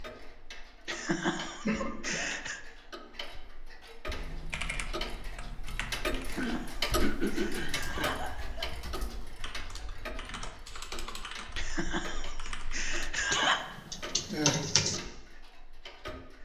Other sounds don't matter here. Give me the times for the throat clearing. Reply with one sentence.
You can hear the throat clearing from 1.6 to 2.3 s, from 6.3 to 8.2 s and from 14.2 to 14.7 s.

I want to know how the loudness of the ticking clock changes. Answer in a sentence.
The volume of the ticking clock goes up, then down.